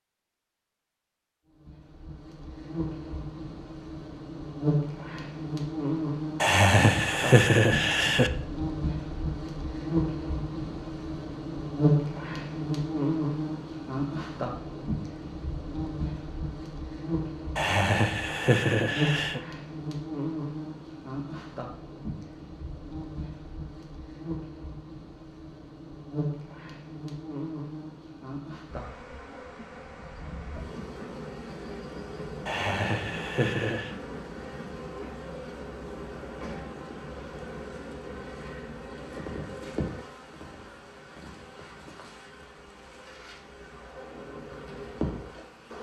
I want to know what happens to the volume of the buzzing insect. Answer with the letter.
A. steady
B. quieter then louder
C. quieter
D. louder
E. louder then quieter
C.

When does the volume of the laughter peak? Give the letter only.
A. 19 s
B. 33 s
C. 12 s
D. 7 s
D.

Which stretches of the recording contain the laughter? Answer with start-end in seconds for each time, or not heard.
6.4-8.3, 17.6-19.4, 32.5-33.9.